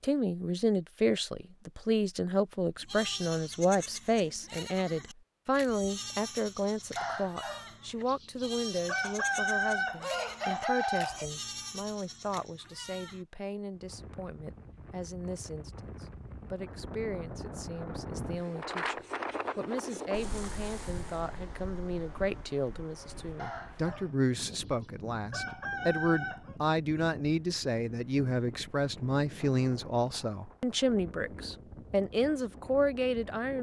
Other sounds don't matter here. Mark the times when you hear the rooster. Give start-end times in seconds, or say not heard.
7.0-11.3, 23.4-26.6.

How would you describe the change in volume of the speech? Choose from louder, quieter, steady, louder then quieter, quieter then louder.
quieter then louder.